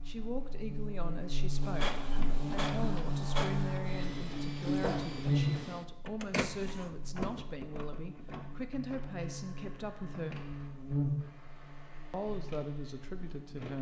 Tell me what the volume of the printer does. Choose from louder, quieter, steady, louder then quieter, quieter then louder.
quieter.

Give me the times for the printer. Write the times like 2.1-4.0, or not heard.
1.6-13.7.